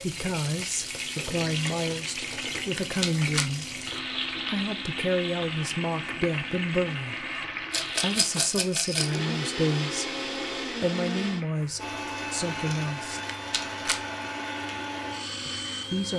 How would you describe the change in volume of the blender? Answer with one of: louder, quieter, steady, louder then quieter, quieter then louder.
louder.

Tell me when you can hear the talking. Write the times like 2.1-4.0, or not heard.
0.0-3.8, 4.5-7.2, 8.0-13.2, 15.4-16.1.